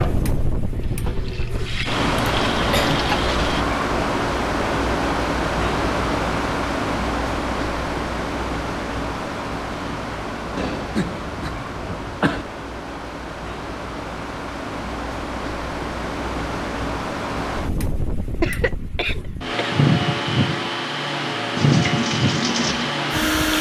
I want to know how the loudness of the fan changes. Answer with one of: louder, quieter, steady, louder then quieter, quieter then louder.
quieter then louder.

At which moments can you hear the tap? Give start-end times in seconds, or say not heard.
0.0-3.6, 21.6-23.5.